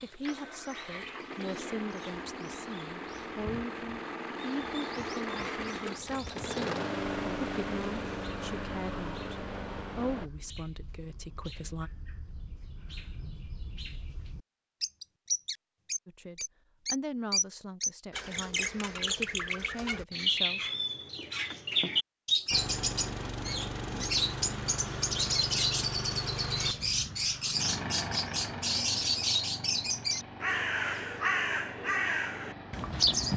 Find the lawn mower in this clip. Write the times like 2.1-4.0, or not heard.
0.0-10.3, 22.5-33.3.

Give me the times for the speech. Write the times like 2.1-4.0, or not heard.
0.0-11.9, 16.1-20.6.